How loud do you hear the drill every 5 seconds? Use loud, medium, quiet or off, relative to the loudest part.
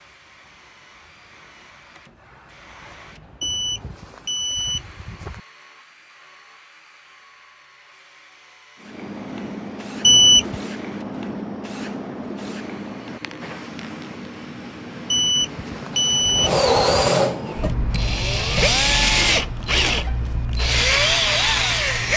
quiet, quiet, quiet, loud, loud.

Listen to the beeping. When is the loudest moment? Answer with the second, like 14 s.
10 s.